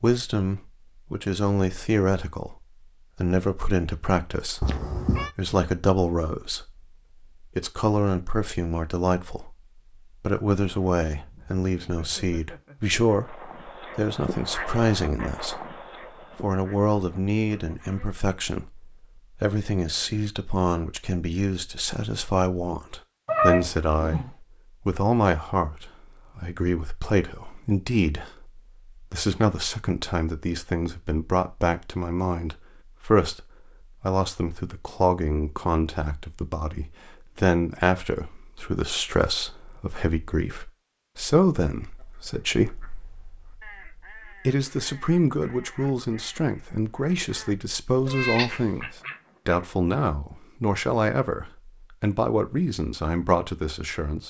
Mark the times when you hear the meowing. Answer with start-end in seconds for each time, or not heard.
4.6-5.3, 23.2-24.3, 48.0-48.5.